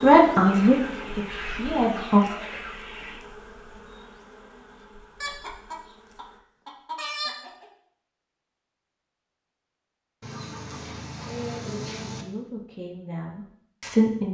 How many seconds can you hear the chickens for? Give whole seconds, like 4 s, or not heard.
7 s.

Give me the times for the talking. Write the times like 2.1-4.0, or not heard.
0.0-2.2, 11.7-14.2.